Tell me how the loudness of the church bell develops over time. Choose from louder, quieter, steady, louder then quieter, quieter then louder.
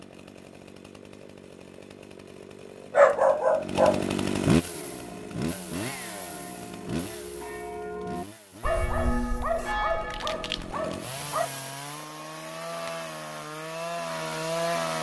louder.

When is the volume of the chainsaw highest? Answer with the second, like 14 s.
4 s.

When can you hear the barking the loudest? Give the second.
3 s.